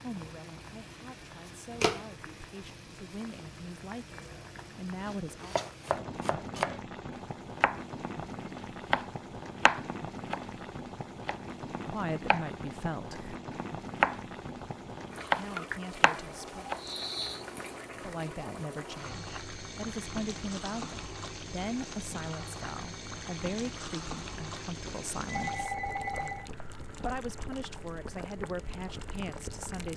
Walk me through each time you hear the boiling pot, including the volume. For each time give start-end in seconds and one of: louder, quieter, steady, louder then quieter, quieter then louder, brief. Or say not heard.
0.0-29.9 steady.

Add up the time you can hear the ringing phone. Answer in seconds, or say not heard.
2 s.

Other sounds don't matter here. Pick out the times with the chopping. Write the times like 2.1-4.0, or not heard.
5.4-6.8, 7.6-8.3, 8.9-10.4, 11.2-12.4, 13.1-14.7, 15.3-16.8.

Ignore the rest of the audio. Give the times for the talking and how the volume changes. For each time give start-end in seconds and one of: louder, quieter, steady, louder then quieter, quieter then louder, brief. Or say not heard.
0.0-5.5 louder
11.9-13.2 brief
15.3-16.6 brief
17.9-29.9 steady.